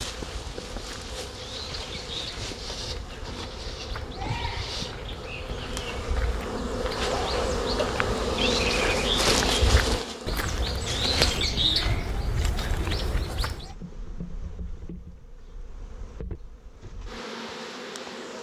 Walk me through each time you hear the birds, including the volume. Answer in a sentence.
The birds can be heard from 0.0 to 13.7 s, getting louder.